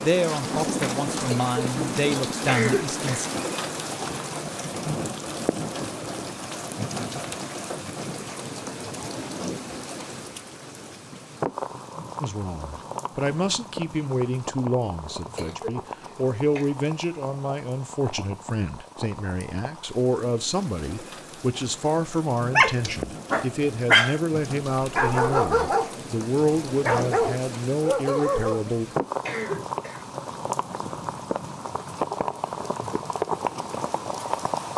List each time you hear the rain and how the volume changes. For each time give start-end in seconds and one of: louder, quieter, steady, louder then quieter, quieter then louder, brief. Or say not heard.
0.0-34.7 quieter then louder.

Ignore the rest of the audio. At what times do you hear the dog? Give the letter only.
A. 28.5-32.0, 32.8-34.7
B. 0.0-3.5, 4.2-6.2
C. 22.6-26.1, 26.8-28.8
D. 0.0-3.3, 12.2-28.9
C.